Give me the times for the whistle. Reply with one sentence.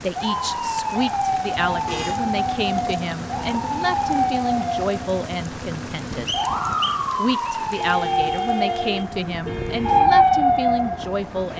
The whistle can be heard from 6.2 to 7.7 s.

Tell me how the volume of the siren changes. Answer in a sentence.
The loudness of the siren goes up.